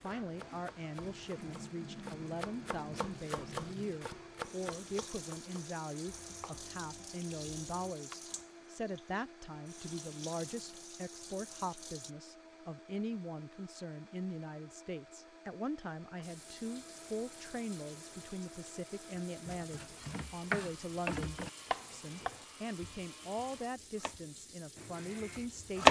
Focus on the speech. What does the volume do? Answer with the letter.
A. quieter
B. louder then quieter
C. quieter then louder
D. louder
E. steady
E.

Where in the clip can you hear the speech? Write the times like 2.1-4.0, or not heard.
0.0-25.8.